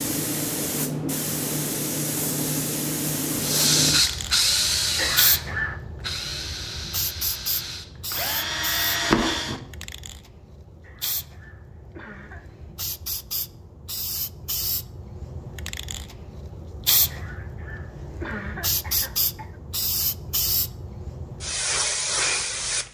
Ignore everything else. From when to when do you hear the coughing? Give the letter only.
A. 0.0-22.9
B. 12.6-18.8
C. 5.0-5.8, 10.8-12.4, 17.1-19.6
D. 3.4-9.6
C.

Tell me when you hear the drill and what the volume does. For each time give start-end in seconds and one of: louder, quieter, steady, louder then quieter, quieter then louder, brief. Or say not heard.
3.4-9.6 quieter then louder.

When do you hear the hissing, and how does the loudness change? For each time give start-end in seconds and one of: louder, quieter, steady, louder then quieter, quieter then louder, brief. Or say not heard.
0.0-22.9 quieter then louder.